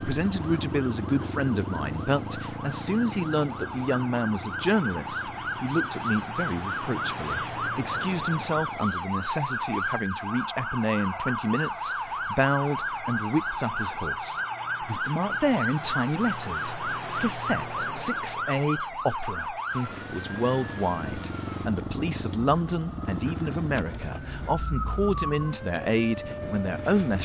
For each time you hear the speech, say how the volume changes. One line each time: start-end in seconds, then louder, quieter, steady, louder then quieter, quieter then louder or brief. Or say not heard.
0.0-27.1 steady.